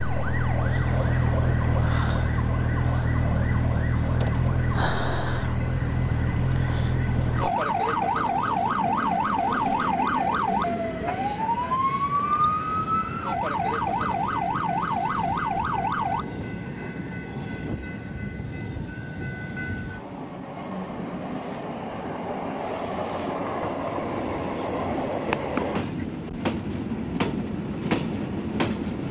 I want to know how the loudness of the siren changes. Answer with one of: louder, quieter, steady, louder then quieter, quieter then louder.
steady.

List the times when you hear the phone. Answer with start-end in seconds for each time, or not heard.
not heard.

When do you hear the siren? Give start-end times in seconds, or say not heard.
0.0-16.2.